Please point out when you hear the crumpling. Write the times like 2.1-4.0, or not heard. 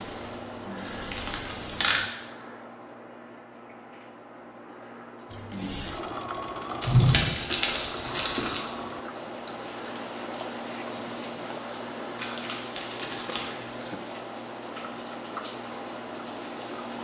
1.1-2.0, 6.8-8.6, 12.2-13.7.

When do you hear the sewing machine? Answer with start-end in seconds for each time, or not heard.
0.0-2.1, 5.3-9.1.